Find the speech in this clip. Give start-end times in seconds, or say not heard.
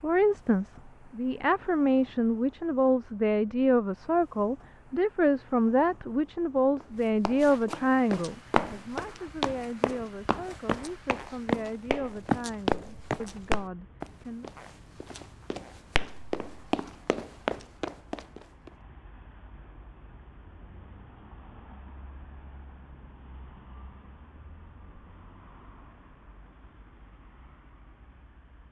0.0-14.5.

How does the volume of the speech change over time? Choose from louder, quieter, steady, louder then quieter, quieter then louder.
quieter.